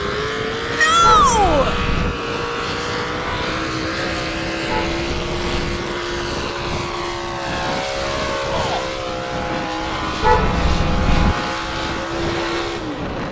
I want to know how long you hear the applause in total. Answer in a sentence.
The applause can't be heard in this clip.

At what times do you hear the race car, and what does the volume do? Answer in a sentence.
The race car can be heard from 0.0 to 13.2 s, at a steady volume.